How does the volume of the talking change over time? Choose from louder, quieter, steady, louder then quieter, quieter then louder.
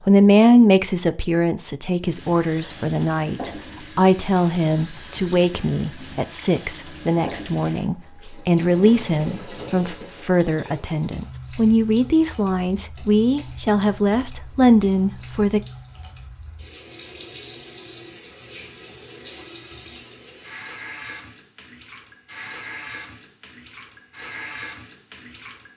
steady.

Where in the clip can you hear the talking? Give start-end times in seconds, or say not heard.
0.1-15.6.